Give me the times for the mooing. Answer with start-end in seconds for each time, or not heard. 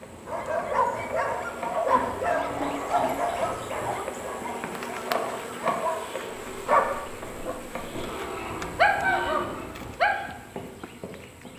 1.9-3.3, 8.0-9.8.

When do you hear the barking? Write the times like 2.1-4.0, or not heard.
0.2-10.2.